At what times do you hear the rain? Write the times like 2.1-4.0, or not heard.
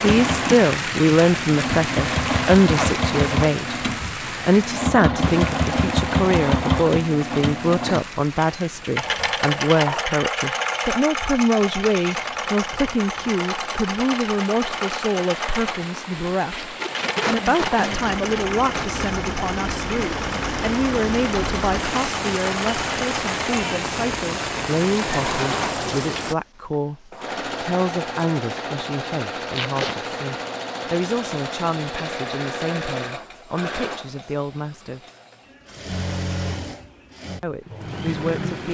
0.0-26.4.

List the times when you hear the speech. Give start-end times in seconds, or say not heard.
0.0-3.8, 4.5-35.0, 37.4-38.6.